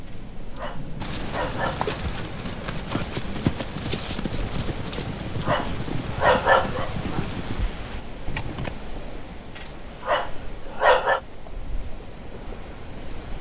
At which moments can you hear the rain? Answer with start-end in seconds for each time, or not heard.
0.0-13.3.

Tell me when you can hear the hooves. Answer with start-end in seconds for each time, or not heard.
1.0-8.8.